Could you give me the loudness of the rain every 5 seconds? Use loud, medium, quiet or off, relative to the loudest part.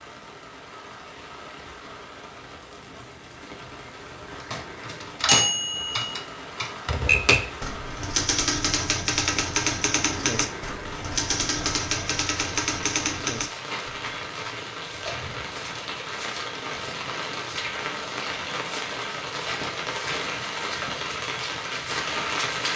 quiet, medium, medium, loud, loud.